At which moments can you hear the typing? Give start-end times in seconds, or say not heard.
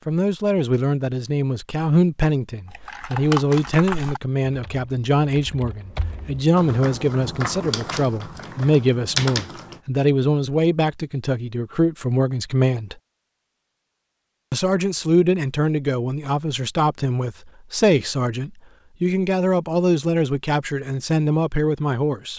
2.7-9.8.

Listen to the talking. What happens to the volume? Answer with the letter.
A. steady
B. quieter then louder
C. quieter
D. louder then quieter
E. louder
A.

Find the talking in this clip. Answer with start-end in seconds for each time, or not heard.
0.1-12.9, 14.5-22.3.